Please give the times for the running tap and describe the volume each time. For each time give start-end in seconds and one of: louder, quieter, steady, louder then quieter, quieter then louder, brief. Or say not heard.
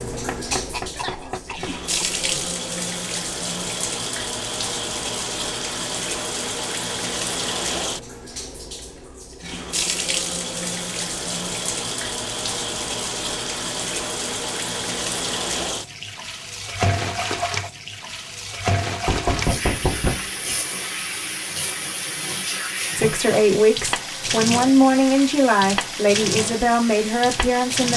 0.0-27.9 steady.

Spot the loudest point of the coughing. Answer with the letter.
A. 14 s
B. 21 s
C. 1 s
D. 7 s
C.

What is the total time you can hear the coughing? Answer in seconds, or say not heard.
2 s.